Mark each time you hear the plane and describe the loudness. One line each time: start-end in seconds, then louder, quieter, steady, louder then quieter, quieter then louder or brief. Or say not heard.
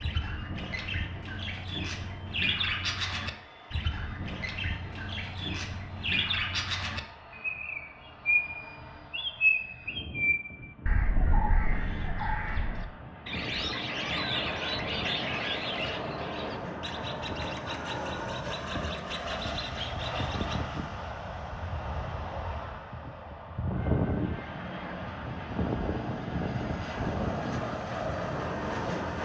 0.2-29.2 louder.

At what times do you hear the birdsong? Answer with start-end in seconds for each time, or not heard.
0.0-20.6.